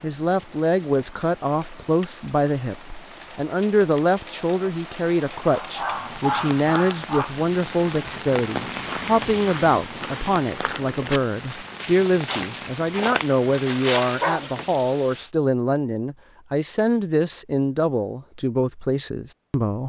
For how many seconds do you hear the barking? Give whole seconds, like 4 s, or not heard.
3 s.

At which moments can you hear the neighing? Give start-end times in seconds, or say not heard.
not heard.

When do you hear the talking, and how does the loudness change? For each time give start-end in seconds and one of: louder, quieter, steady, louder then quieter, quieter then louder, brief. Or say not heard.
0.0-19.8 steady.